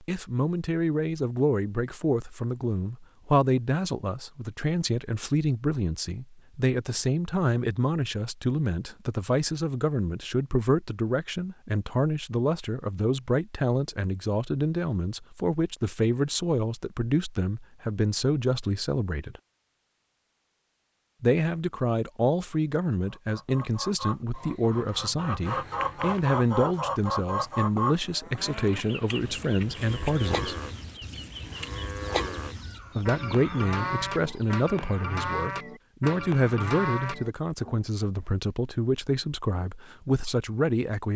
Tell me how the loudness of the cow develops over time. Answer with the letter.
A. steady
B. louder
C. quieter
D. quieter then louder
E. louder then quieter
B.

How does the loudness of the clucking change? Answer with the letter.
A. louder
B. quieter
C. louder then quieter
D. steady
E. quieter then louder
C.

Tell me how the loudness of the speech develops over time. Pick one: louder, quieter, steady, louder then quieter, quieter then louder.
steady.